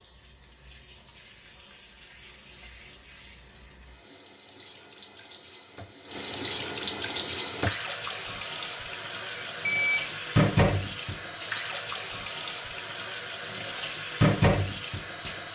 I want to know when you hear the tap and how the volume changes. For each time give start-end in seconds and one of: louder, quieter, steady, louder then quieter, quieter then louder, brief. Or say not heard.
0.0-15.4 louder.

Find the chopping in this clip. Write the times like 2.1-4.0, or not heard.
not heard.